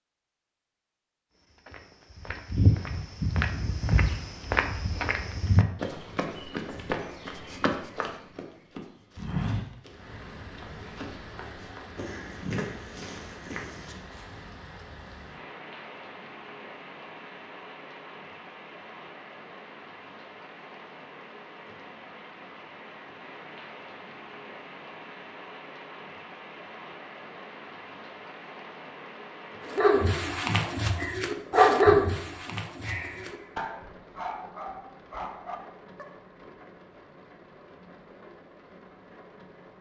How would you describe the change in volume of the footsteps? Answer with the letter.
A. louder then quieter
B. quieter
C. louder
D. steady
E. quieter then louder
B.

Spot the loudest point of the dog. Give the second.
32 s.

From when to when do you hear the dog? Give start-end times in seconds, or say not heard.
29.7-36.0.